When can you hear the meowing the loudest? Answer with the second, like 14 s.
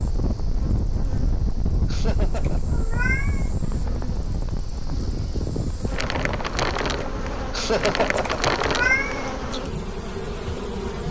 9 s.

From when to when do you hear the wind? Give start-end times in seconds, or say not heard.
0.0-11.0.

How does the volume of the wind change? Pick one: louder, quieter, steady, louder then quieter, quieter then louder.
quieter.